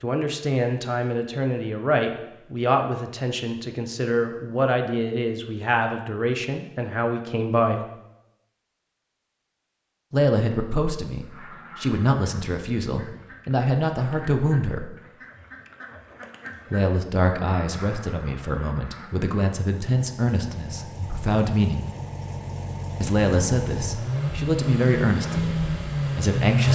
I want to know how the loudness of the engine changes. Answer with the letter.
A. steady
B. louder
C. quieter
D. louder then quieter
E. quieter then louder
B.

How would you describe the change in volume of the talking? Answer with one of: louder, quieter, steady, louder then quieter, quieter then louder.
steady.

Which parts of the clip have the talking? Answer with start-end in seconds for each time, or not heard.
0.0-7.8, 10.1-14.9, 16.7-21.9, 23.0-26.6.